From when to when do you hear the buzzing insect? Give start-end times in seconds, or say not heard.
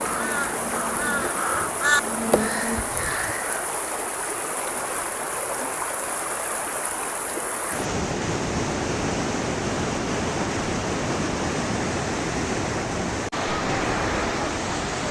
0.0-3.0.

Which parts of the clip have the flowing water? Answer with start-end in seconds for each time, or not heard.
0.0-15.0.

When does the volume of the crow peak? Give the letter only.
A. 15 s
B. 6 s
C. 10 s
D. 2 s
D.